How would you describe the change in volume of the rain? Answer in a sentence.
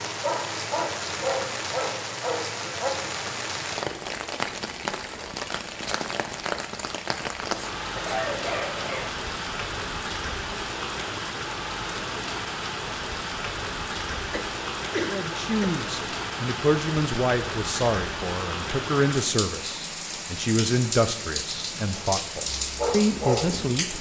The loudness of the rain stays about the same.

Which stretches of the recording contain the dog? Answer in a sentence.
You can hear the dog from 0.1 to 3.0 s and from 22.4 to 23.6 s.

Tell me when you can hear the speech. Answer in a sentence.
The speech can be heard from 15.1 to 23.9 s.